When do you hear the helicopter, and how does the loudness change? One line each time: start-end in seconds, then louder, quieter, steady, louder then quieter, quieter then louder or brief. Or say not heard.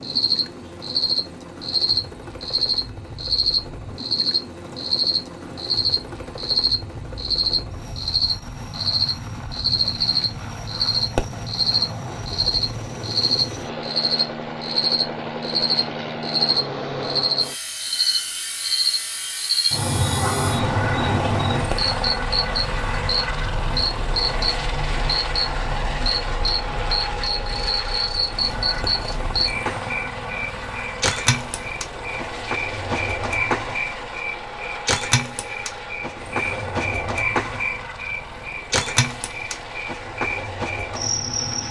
0.0-41.6 louder then quieter.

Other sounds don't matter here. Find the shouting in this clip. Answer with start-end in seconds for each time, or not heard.
not heard.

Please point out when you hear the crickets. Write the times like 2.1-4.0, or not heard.
0.0-41.6.